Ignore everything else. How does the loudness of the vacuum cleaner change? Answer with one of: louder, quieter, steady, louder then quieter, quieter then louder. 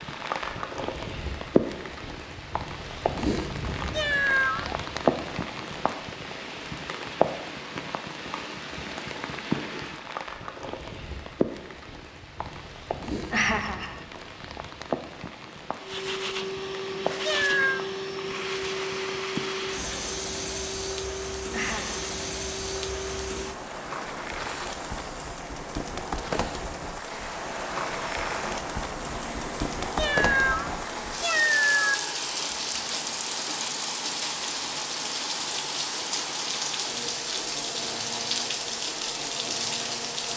quieter.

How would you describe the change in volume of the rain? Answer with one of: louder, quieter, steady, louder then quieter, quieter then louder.
quieter then louder.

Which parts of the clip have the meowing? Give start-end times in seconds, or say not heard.
3.9-4.8, 17.2-17.9, 29.9-31.9.